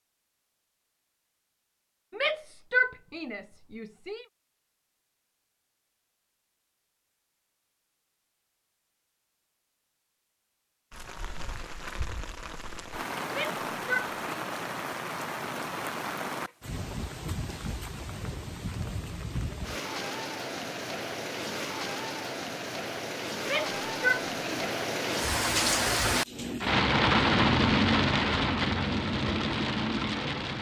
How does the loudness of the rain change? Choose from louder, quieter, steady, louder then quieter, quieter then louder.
louder.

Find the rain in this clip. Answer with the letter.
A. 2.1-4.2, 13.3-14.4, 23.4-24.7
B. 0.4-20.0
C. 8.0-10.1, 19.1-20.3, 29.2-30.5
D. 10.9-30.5
D.